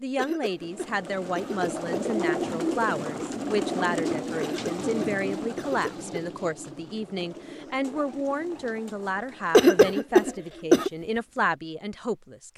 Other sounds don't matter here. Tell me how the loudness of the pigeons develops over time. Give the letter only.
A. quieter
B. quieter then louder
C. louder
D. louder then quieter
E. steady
A.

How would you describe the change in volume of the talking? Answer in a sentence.
The volume of the talking stays about the same.